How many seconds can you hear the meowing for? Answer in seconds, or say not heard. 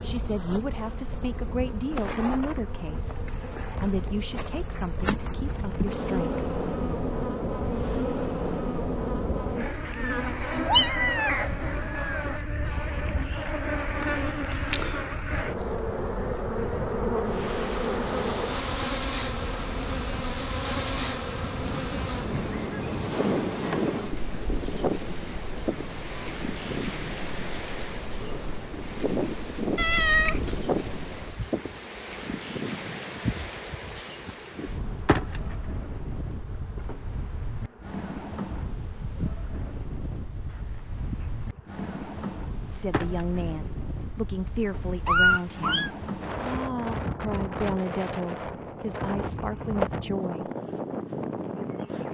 4 s.